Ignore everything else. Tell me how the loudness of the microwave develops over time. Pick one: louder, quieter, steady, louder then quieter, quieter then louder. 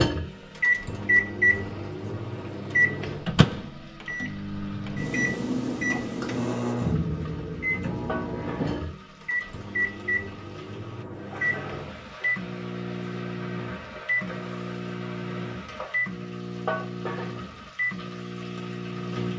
quieter.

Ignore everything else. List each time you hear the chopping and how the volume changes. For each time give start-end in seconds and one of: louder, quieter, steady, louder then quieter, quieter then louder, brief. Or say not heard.
not heard.